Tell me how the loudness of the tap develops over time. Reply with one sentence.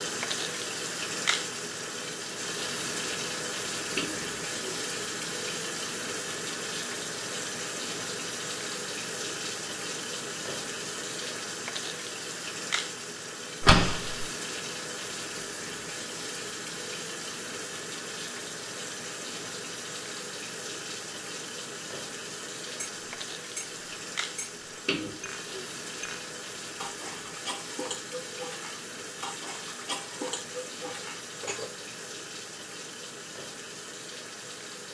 The volume of the tap goes down.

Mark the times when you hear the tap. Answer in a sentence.
You can hear the tap from 0.0 to 34.8 s.